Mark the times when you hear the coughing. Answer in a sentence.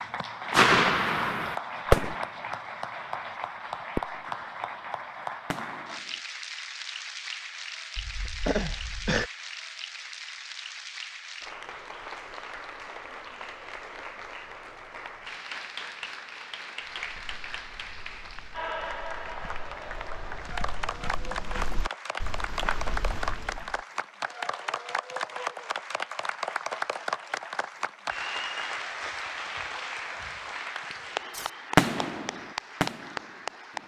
You can hear the coughing from 8.0 to 9.3 s.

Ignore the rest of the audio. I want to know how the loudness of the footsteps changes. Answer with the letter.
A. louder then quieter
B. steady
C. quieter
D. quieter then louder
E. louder
E.